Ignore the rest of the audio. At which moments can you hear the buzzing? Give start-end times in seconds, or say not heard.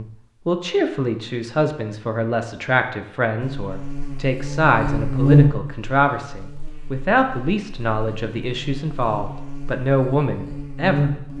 3.4-11.3.